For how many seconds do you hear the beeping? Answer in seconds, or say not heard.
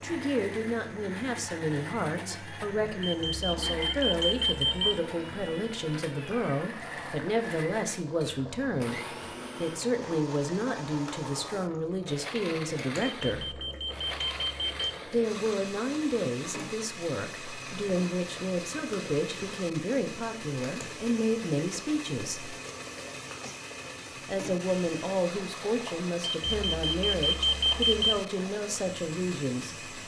6 s.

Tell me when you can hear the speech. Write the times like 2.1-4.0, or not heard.
0.0-13.6, 15.1-22.6, 24.2-29.8.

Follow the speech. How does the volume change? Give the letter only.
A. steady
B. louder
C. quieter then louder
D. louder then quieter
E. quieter
A.